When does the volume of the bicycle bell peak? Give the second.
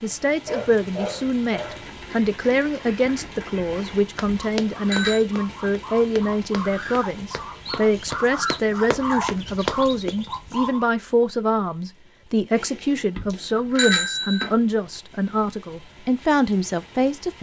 14 s.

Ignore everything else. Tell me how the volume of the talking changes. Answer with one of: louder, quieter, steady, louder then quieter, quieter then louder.
steady.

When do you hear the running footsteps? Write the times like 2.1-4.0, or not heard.
4.2-10.1.